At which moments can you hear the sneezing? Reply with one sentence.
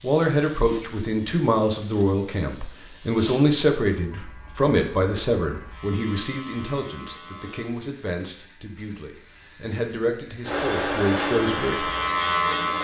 You can't hear the sneezing here.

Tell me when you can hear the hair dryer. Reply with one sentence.
The hair dryer can be heard from 10.4 to 12.7 s.